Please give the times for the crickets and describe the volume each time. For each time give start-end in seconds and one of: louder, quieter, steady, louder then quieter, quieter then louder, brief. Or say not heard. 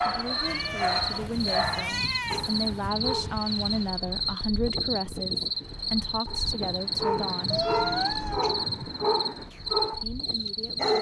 0.2-10.9 steady.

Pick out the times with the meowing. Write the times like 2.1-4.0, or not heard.
0.3-2.9, 7.5-8.6.